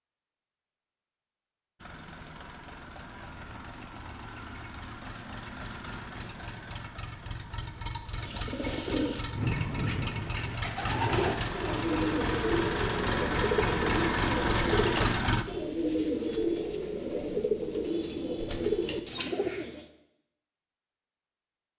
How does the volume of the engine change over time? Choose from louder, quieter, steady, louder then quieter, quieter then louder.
louder.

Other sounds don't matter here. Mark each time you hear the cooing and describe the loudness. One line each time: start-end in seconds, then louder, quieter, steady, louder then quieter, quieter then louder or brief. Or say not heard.
8.2-19.9 steady.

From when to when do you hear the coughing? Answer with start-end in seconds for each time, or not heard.
not heard.